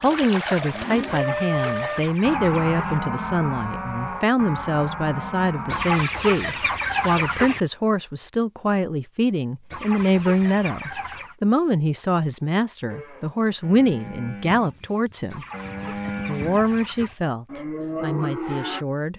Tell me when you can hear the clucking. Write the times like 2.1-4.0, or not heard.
1.1-3.0, 5.7-7.6, 9.7-11.3, 15.3-17.1.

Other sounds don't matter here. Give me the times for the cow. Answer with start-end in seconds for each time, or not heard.
0.0-6.0, 12.8-18.9.